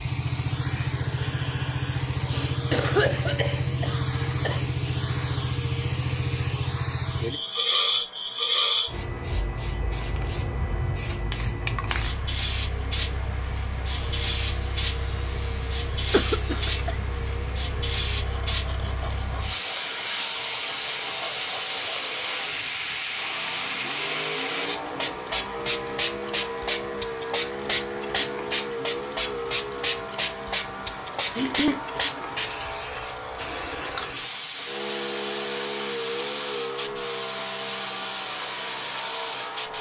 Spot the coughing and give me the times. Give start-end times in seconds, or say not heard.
2.1-4.6, 16.1-16.9, 31.4-32.0.